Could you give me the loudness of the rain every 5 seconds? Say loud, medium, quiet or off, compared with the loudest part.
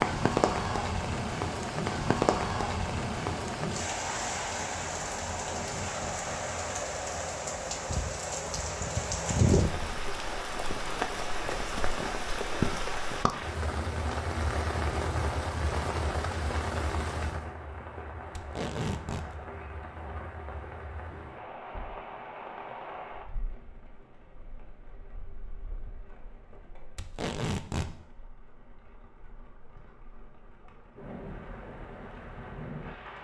loud, loud, loud, medium, quiet, quiet, quiet.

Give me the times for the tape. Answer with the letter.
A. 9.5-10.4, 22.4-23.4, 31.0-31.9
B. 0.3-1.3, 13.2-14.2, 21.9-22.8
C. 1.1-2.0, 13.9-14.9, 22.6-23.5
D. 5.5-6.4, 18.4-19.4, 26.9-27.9
D.